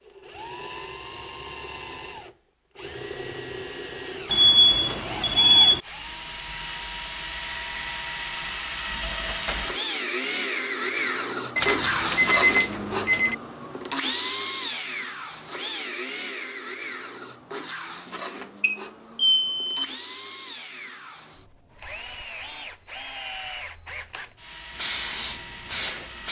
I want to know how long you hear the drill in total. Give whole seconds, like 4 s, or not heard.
26 s.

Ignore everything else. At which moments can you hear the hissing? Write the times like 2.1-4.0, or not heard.
24.8-26.2.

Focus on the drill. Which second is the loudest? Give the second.
12 s.